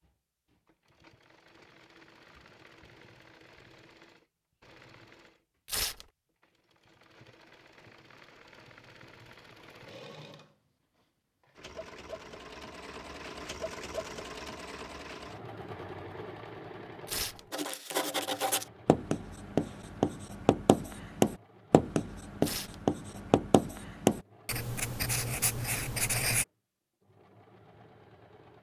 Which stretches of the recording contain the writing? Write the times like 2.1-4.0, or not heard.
17.5-26.4.